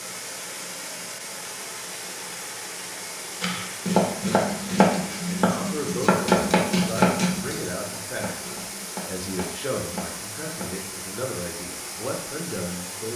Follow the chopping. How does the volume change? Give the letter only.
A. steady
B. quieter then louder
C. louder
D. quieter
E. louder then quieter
D.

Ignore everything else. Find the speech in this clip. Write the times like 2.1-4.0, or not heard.
5.2-13.1.